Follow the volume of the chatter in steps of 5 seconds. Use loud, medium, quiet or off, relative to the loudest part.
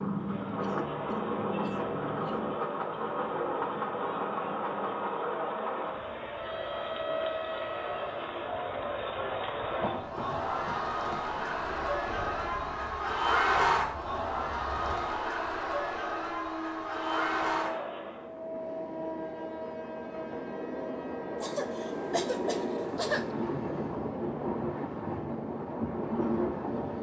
medium, medium, loud, loud, off, off.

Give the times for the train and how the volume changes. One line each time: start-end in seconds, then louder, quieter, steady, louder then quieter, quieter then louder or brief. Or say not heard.
0.0-26.9 quieter then louder.